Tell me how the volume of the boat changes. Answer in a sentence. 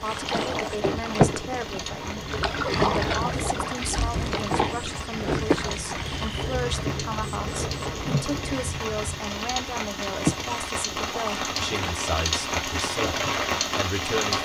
The loudness of the boat goes down.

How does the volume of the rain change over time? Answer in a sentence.
The loudness of the rain goes up.